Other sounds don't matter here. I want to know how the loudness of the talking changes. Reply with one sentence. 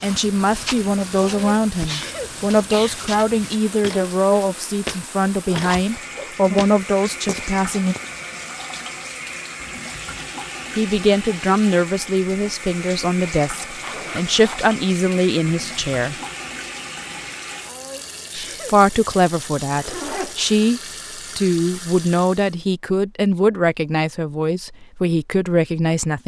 The loudness of the talking stays about the same.